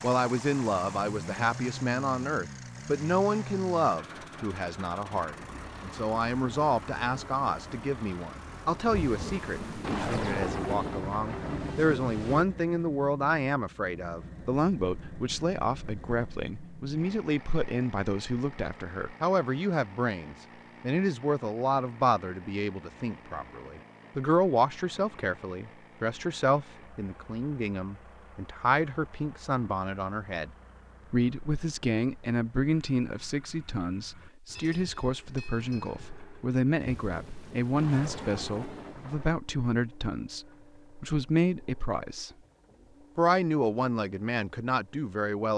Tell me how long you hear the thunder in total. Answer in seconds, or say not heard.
6 s.